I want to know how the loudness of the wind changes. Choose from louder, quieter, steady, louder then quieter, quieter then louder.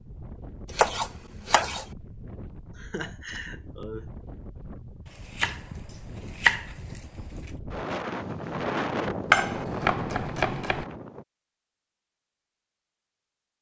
louder.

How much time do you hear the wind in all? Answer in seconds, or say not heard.
11 s.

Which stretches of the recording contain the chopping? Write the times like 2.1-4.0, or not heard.
0.7-1.9, 5.0-7.2, 9.3-10.8.